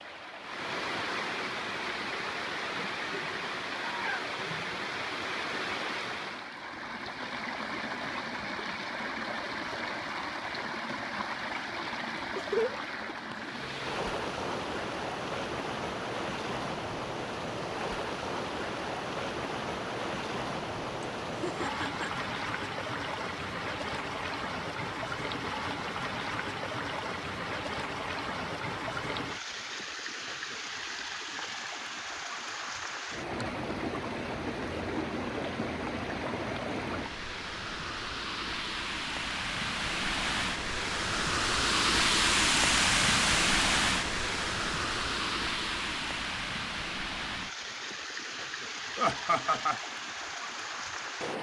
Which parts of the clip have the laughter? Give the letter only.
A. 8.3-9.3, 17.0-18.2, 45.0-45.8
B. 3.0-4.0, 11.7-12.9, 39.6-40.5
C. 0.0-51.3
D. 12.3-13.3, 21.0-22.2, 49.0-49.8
D.